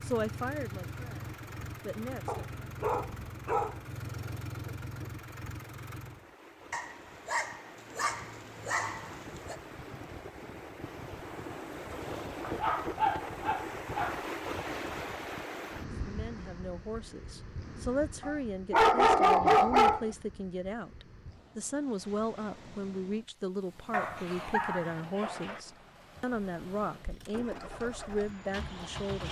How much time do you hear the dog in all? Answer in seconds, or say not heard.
10 s.